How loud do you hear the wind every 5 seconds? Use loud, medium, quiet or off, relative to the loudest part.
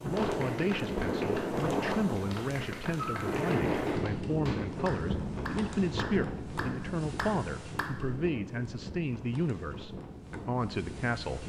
loud, medium, medium.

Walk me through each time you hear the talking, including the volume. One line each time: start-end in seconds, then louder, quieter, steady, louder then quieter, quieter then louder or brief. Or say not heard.
0.0-11.4 steady.